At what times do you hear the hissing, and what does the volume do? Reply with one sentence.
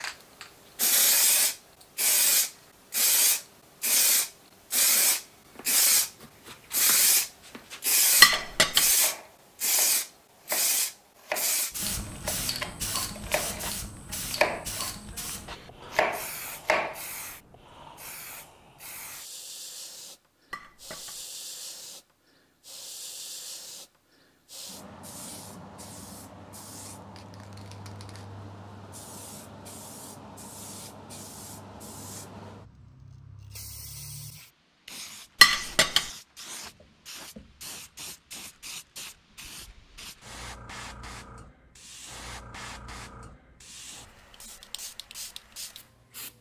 The hissing can be heard from 0.0 to 46.3 s, getting quieter.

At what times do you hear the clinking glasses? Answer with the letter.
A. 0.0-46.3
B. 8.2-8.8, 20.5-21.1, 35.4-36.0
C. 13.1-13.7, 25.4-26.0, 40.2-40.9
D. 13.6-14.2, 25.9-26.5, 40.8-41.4
B.